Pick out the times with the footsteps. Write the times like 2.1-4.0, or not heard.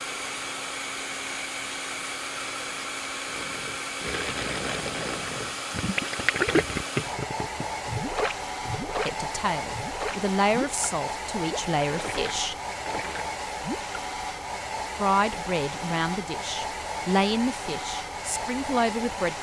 not heard.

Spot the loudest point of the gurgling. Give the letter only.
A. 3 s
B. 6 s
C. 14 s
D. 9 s
B.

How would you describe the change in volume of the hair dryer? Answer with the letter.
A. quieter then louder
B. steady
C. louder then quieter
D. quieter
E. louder
B.